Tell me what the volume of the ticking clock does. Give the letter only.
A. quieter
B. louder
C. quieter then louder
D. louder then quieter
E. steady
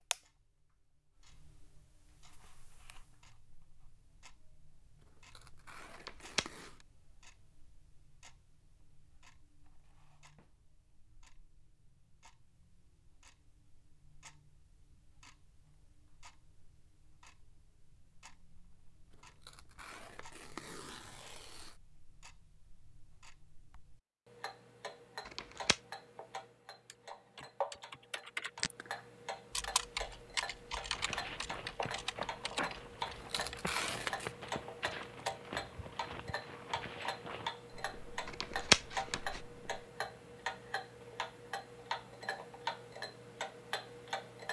B.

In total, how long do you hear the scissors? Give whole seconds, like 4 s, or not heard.
2 s.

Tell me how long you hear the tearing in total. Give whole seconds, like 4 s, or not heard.
6 s.